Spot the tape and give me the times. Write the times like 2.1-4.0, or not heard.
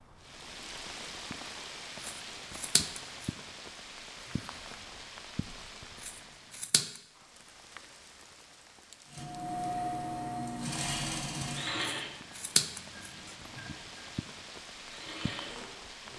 4.2-5.2.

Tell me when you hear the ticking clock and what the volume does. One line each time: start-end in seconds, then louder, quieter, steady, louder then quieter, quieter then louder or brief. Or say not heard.
not heard.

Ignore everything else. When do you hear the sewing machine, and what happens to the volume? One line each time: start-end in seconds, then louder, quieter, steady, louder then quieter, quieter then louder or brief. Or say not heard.
9.1-16.1 quieter then louder.